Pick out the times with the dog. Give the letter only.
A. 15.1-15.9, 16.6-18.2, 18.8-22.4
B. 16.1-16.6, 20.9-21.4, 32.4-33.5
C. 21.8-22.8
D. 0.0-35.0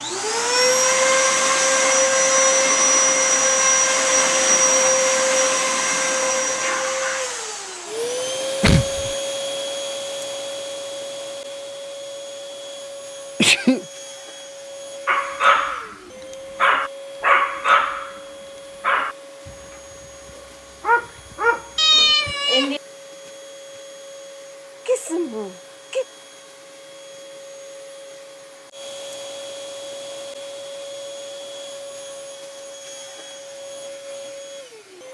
A.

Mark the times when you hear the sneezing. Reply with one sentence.
You can hear the sneezing from 8.6 to 9.1 s, from 13.4 to 13.8 s and from 24.9 to 26.1 s.